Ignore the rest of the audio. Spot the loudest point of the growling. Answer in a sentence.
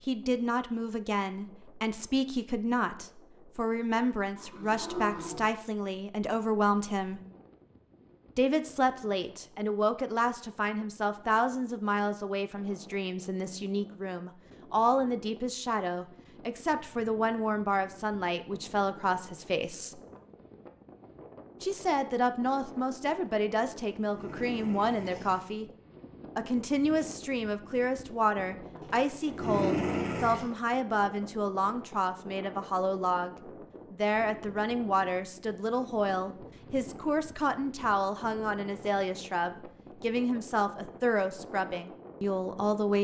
The loudest moment of the growling is at 30 seconds.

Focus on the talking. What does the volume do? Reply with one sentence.
The loudness of the talking stays about the same.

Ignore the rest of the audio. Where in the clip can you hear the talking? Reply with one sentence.
You can hear the talking from 0.1 to 7.2 s, from 8.3 to 20.0 s, from 21.6 to 25.6 s and from 26.4 to 42.9 s.